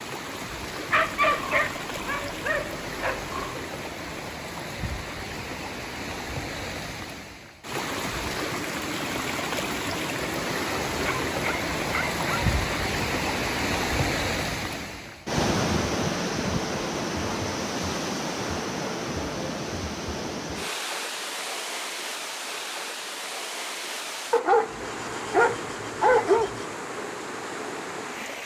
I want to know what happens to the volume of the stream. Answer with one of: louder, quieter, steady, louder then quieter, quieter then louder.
louder then quieter.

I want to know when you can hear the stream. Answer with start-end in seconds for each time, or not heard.
0.0-28.4.